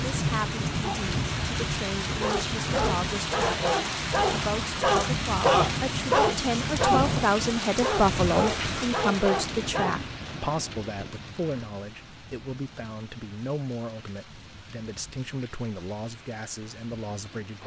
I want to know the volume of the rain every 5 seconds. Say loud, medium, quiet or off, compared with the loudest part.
loud, loud, quiet, quiet.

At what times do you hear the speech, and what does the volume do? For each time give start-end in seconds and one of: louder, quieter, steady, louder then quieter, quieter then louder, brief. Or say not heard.
0.0-17.6 louder then quieter.